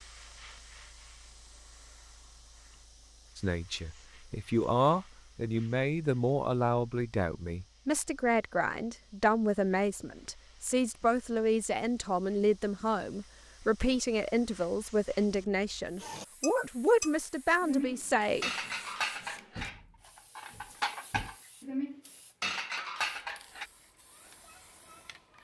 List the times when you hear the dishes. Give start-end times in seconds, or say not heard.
16.0-23.6.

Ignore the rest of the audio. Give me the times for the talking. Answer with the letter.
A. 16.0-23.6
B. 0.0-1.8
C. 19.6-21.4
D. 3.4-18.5
D.